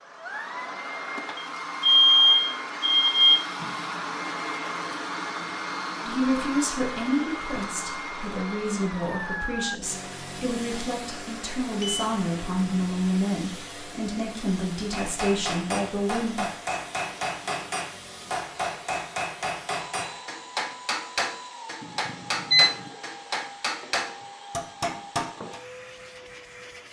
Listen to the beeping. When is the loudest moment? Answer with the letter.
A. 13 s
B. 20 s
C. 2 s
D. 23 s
C.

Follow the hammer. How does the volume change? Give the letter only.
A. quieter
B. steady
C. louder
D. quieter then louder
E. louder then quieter
B.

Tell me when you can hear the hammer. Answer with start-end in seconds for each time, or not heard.
14.9-25.6.